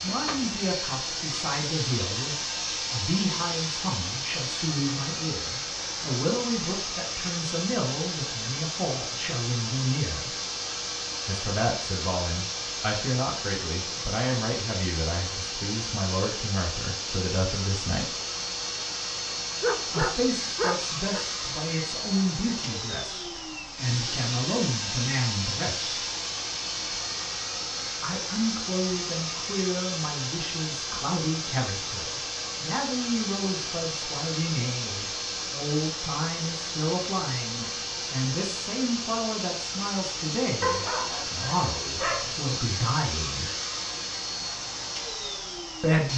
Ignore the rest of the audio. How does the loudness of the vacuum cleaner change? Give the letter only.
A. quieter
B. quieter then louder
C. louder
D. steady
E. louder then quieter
D.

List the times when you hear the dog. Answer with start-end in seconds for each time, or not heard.
19.6-21.2, 40.6-42.5.